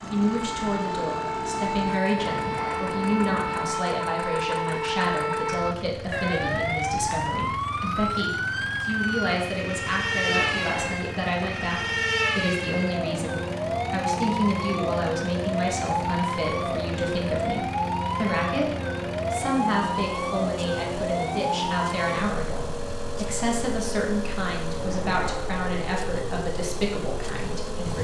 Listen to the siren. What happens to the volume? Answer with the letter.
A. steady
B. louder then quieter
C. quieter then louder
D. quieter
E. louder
D.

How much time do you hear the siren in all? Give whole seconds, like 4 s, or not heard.
28 s.